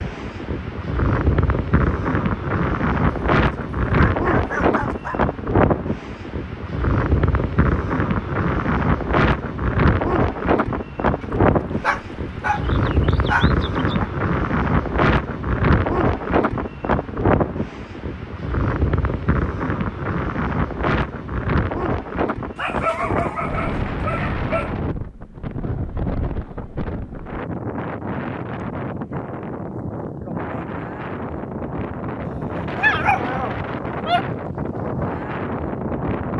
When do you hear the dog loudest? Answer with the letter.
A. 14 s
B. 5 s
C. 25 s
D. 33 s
D.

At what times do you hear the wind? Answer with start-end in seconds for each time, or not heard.
0.0-36.3.